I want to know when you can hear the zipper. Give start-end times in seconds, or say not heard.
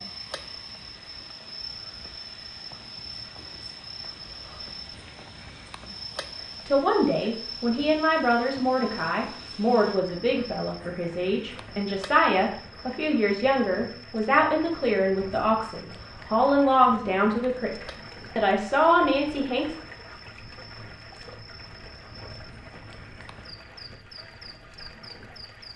not heard.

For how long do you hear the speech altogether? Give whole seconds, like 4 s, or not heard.
13 s.